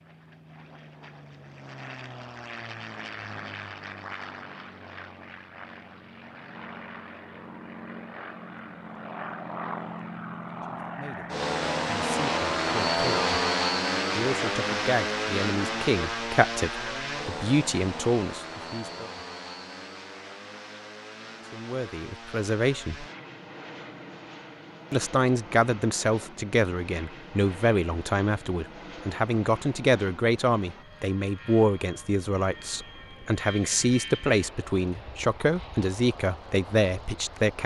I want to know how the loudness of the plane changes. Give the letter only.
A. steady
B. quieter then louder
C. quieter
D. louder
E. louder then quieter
E.